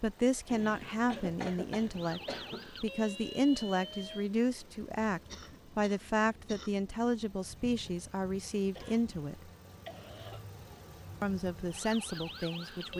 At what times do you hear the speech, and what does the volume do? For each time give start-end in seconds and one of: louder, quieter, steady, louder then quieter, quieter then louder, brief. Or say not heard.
0.0-9.5 steady
11.2-12.9 brief.